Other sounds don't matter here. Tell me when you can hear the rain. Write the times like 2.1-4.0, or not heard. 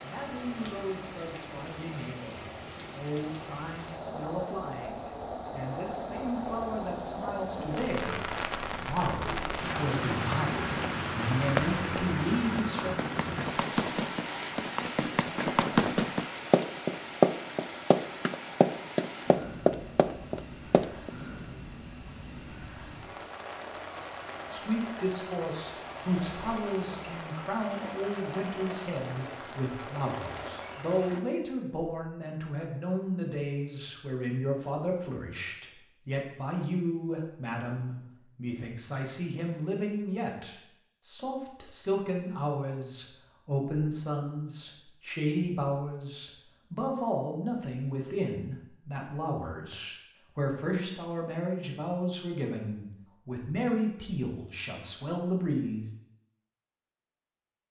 0.0-31.2.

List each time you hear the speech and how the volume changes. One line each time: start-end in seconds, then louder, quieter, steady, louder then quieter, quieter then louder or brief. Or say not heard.
0.0-12.9 louder
24.5-56.0 steady.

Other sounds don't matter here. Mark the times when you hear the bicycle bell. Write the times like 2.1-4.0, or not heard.
not heard.